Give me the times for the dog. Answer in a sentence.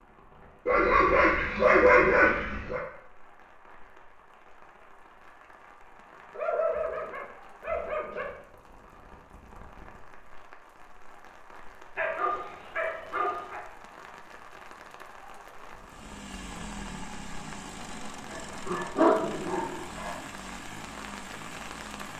The dog can be heard from 0.7 to 2.8 s, from 6.3 to 8.2 s, from 11.9 to 13.6 s and from 18.3 to 20.1 s.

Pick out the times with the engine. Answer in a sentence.
The engine can be heard from 15.8 to 22.1 s.